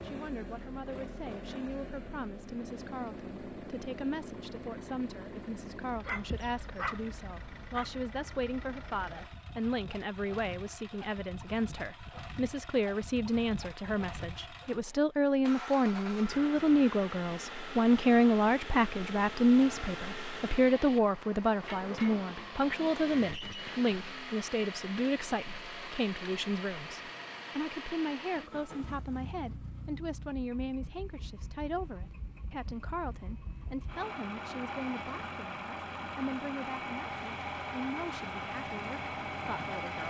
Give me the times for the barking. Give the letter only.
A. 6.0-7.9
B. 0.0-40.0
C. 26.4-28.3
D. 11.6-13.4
A.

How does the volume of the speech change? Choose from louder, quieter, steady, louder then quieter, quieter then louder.
louder then quieter.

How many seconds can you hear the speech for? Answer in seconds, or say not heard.
40 s.